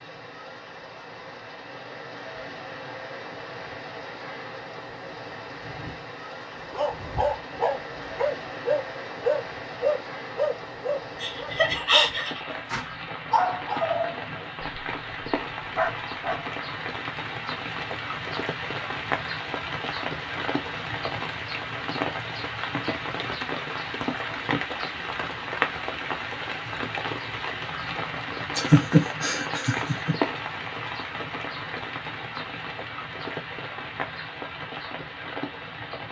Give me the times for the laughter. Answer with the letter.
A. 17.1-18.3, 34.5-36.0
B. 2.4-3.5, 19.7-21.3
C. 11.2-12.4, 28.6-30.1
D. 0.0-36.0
C.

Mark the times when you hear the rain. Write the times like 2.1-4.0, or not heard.
0.0-36.0.